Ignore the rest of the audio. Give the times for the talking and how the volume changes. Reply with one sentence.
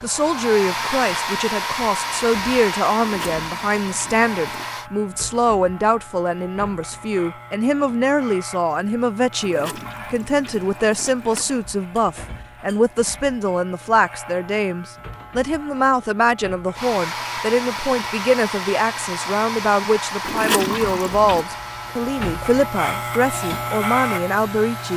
The talking can be heard from 0.0 to 24.9 s, at a steady volume.